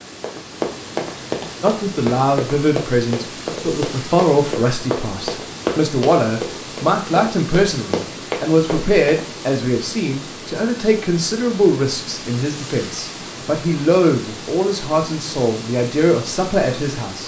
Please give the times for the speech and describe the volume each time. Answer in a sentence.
The speech can be heard from 1.6 to 17.2 s, at a steady volume.